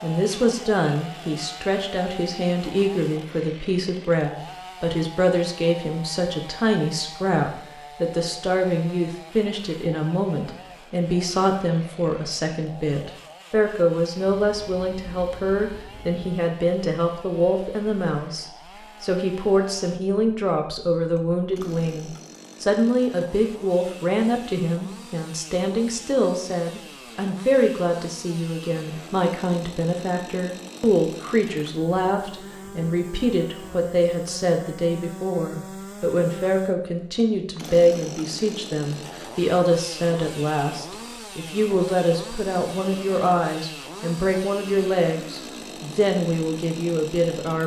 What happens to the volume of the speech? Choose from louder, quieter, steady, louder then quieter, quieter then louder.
steady.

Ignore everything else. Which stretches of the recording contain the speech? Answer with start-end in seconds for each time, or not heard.
0.0-47.6.